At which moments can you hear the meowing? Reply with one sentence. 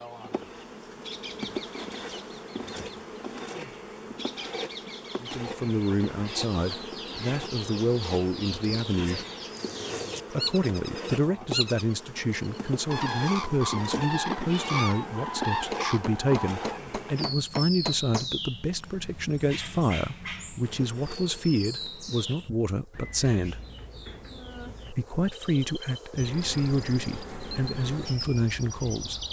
You can hear the meowing from 13.9 to 15.1 s.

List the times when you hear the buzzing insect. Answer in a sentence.
You can hear the buzzing insect from 0.0 to 17.2 s and from 20.6 to 29.2 s.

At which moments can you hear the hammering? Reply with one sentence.
You can hear the hammering from 15.7 to 18.3 s.